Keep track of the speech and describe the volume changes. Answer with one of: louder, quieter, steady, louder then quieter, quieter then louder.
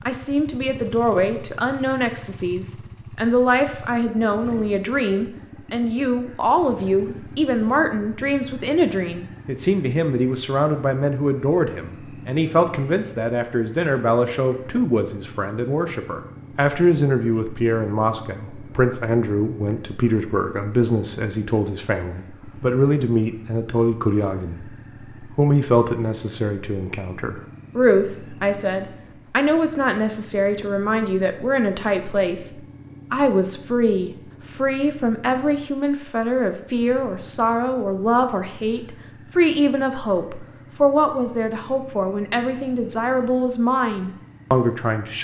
steady.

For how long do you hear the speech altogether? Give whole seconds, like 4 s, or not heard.
45 s.